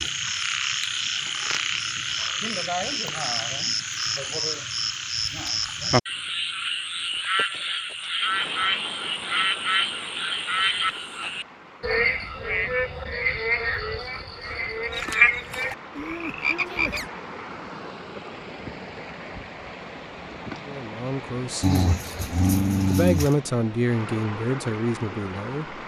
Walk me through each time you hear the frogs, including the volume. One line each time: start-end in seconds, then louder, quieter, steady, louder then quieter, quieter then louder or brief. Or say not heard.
0.0-17.1 steady.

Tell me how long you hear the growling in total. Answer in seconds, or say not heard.
2 s.